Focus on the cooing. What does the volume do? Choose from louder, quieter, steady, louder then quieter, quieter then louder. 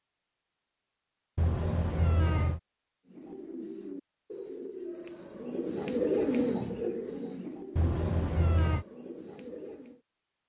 louder then quieter.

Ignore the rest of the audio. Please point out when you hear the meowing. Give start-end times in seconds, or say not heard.
1.4-2.6, 7.8-8.8.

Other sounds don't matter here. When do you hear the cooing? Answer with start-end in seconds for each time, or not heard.
3.0-10.0.